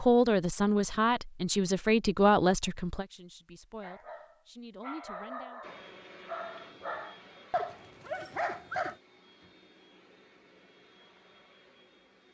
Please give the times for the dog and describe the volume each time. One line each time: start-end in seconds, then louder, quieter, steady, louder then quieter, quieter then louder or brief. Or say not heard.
3.8-8.9 louder.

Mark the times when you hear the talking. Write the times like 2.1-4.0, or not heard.
0.0-5.6.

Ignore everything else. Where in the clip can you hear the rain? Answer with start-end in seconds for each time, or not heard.
not heard.